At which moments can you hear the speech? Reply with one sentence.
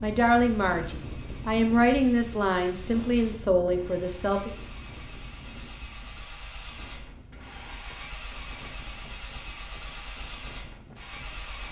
You can hear the speech from 0.0 to 4.5 s.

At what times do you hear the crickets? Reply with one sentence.
The crickets can't be heard in this clip.